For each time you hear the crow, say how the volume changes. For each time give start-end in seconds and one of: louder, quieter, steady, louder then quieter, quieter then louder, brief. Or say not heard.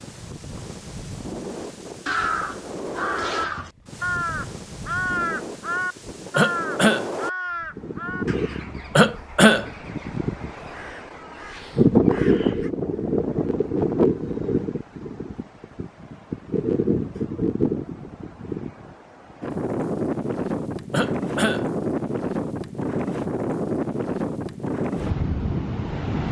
1.6-12.7 quieter.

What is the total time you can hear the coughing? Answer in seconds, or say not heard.
2 s.